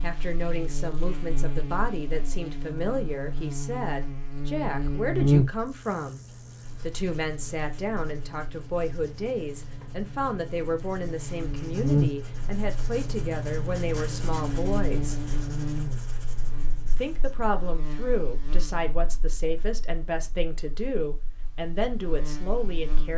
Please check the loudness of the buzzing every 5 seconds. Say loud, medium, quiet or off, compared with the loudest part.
medium, loud, loud, medium, quiet.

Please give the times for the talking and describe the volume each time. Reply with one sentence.
You can hear the talking from 0.0 to 6.2 s, at a steady volume; from 6.8 to 15.2 s, at a steady volume; and from 16.9 to 23.1 s, at a steady volume.